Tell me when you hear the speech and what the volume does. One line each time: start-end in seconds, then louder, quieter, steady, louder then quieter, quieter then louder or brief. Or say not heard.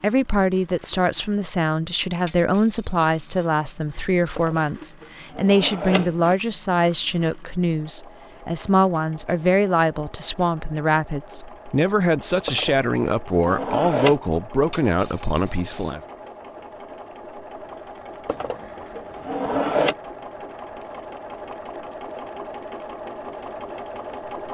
0.0-16.0 steady.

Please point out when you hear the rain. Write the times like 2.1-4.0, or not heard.
not heard.